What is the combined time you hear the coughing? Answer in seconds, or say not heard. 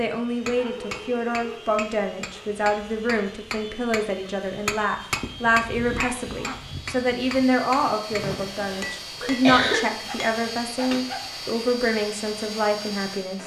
2 s.